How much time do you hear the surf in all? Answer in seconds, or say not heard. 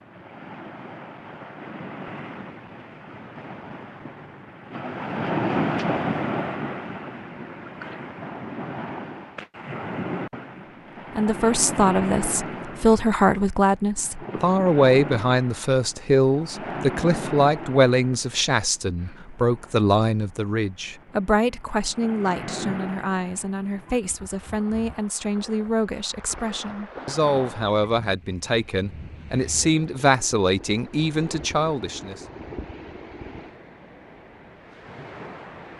36 s.